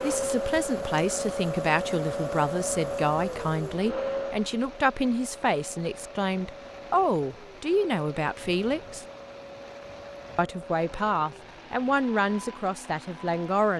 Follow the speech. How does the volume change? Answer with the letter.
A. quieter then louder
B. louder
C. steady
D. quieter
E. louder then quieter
C.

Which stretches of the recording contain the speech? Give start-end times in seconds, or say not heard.
0.0-9.1, 10.3-13.7.